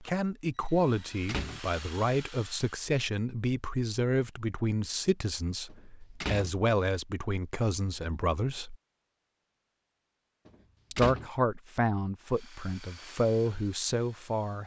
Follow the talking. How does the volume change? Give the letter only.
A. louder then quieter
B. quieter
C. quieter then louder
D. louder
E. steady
E.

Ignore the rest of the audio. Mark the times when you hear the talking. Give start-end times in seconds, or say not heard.
0.0-8.8, 10.9-14.6.